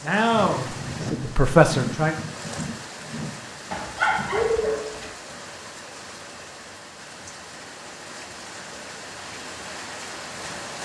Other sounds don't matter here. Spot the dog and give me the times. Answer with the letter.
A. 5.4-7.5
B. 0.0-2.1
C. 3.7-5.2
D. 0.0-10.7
C.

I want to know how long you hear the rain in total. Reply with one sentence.
You can hear the rain for 11 seconds altogether.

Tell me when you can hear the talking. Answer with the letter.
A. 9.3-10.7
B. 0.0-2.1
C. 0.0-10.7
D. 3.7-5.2
B.